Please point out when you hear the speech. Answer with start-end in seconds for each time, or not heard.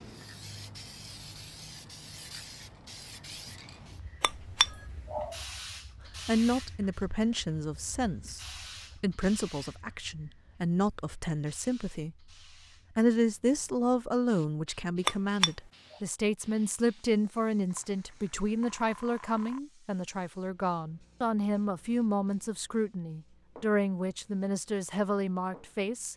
6.2-12.2, 12.9-26.1.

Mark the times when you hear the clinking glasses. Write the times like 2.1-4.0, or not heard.
4.2-5.3, 15.1-15.5.